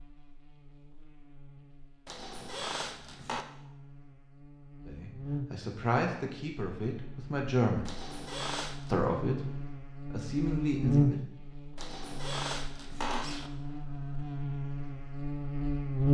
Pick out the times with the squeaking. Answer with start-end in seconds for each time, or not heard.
2.0-3.5, 7.8-8.9, 11.8-13.5.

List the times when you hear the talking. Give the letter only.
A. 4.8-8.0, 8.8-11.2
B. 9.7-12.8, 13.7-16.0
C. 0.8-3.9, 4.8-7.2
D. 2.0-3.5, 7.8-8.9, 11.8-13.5
A.